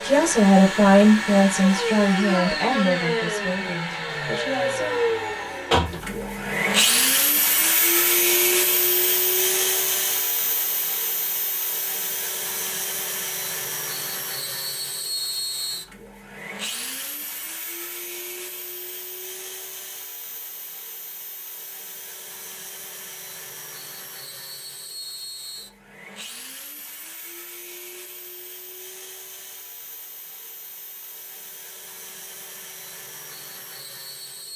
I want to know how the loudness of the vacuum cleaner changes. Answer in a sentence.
The loudness of the vacuum cleaner goes down.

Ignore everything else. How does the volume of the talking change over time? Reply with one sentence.
The loudness of the talking goes down.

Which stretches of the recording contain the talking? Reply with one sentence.
You can hear the talking from 0.0 to 5.0 s.